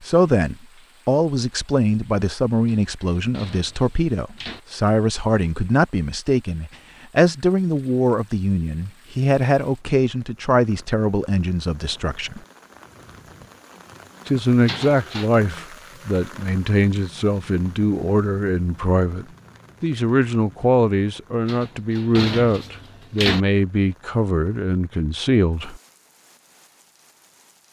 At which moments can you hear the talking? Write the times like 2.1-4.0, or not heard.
0.0-12.4, 14.2-25.8.